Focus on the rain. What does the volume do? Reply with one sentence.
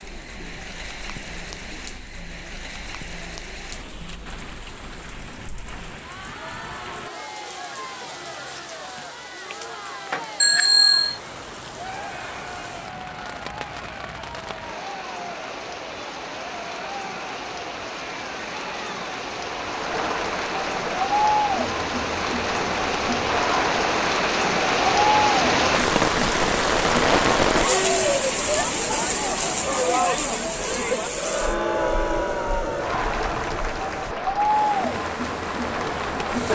The volume of the rain goes up, then down.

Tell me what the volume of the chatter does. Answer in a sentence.
The volume of the chatter goes up.